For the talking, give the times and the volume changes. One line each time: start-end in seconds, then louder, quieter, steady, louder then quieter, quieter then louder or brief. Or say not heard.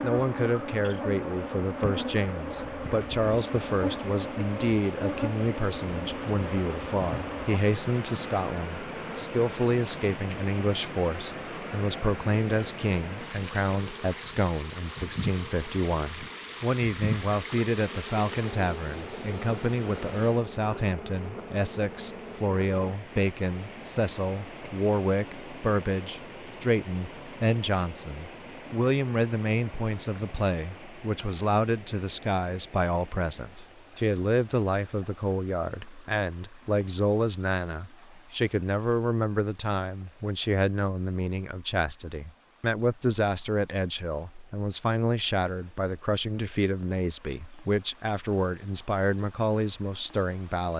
0.0-50.7 steady.